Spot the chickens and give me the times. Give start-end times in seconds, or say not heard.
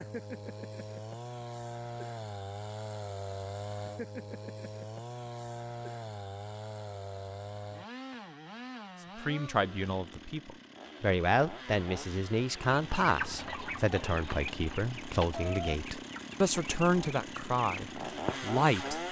12.6-19.0.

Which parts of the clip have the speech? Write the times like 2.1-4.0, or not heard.
9.2-19.0.